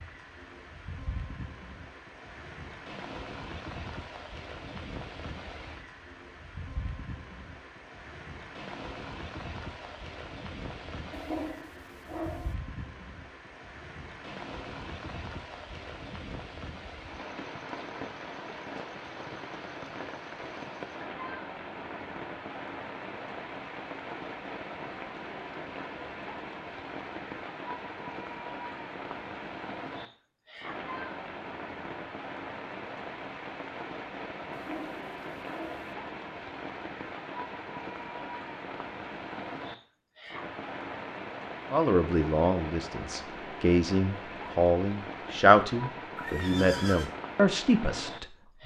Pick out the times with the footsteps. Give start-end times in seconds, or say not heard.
not heard.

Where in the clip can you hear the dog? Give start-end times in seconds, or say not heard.
11.1-12.6, 34.5-36.0.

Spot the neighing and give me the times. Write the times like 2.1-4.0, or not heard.
46.1-47.1.